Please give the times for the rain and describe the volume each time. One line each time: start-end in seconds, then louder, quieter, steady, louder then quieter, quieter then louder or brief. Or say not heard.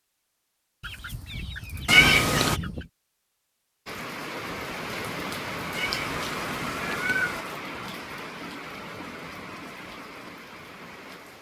3.9-11.3 quieter.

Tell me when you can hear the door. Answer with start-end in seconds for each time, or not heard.
not heard.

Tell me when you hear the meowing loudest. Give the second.
2 s.